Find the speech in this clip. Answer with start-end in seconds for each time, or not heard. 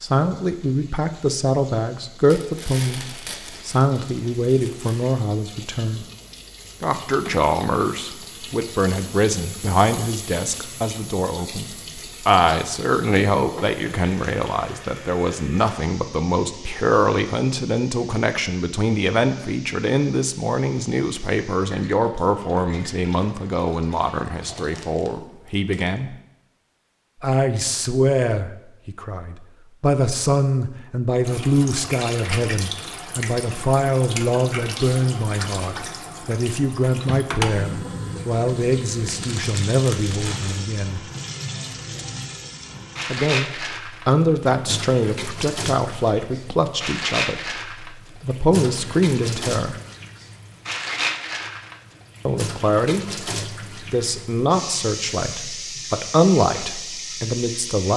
0.0-6.0, 6.8-26.1, 27.2-41.0, 43.0-49.8, 52.2-57.9.